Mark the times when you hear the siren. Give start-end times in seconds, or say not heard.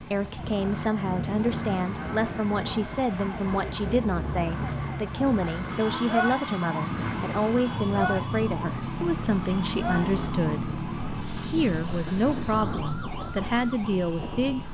0.0-14.6.